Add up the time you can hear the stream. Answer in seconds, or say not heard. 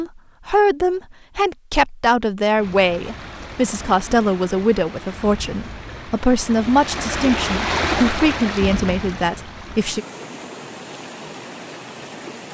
10 s.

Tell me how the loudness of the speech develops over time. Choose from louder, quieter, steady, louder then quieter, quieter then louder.
steady.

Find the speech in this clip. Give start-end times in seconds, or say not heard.
0.0-10.1.